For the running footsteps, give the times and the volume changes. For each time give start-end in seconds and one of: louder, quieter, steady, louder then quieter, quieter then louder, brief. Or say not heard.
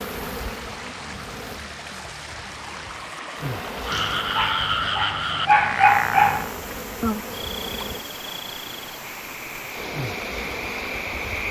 not heard.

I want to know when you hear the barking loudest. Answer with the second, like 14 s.
6 s.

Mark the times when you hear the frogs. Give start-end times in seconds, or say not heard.
3.9-11.4.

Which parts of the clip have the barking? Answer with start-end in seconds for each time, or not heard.
3.9-6.5.